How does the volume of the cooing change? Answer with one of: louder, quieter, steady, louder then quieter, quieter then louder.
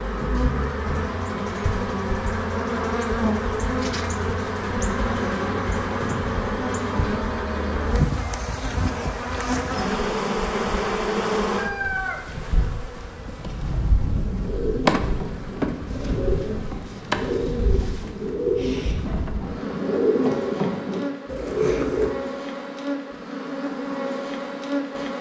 louder.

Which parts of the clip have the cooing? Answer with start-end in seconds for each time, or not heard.
13.5-22.1.